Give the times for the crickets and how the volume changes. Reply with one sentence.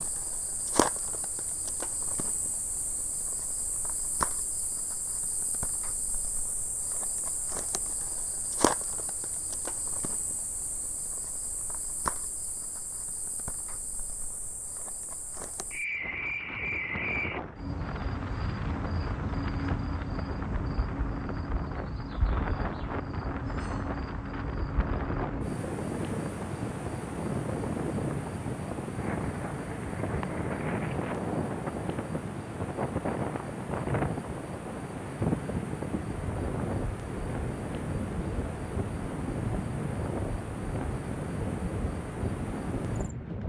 The crickets can be heard from 0.0 to 43.1 s, at a steady volume.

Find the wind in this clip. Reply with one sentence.
The wind can be heard from 15.9 to 43.4 s.